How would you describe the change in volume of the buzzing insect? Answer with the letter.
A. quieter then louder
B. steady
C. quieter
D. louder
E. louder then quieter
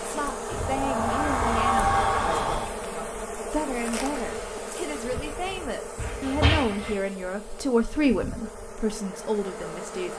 C.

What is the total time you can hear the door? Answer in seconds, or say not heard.
3 s.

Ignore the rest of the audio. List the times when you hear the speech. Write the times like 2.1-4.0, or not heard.
0.0-10.1.